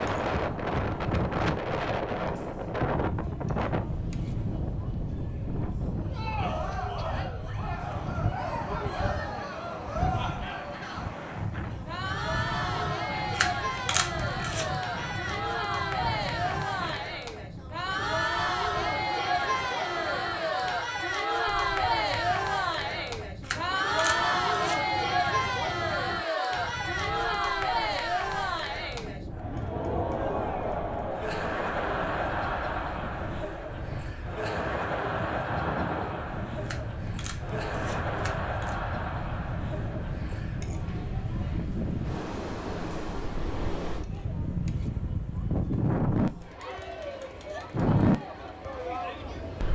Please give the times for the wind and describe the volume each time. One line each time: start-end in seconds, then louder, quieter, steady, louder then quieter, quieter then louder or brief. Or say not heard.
0.0-49.6 quieter then louder.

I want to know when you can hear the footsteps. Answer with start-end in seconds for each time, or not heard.
not heard.